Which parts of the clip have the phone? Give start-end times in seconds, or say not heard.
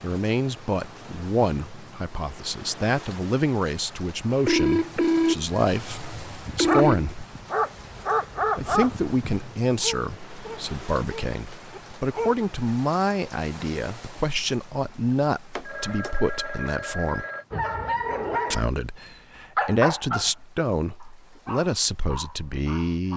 4.5-7.2, 15.6-17.4.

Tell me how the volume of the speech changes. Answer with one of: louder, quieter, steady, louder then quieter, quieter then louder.
steady.